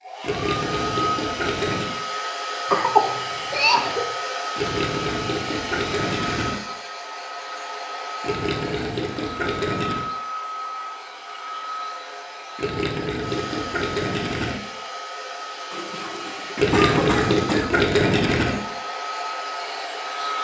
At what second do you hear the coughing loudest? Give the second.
3 s.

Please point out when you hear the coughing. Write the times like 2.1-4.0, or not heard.
2.7-4.1, 15.7-17.8.